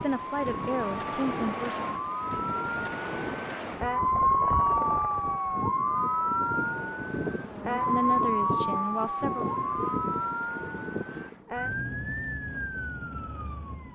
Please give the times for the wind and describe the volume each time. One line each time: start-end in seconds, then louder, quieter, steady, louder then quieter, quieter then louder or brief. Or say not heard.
0.0-11.4 steady.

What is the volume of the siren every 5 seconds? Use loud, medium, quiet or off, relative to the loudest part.
loud, loud, medium.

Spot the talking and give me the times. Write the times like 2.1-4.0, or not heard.
0.0-1.9, 7.5-9.7.